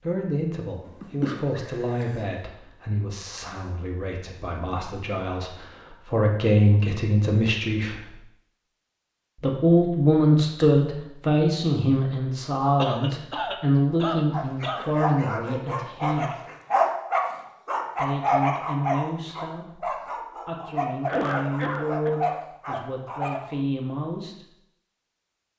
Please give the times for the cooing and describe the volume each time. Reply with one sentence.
You can't hear the cooing here.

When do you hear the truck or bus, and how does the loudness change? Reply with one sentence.
The truck or bus can't be heard in this clip.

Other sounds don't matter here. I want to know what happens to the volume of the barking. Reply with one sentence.
The loudness of the barking goes up, then down.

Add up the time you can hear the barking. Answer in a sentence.
You can hear the barking for 9 seconds altogether.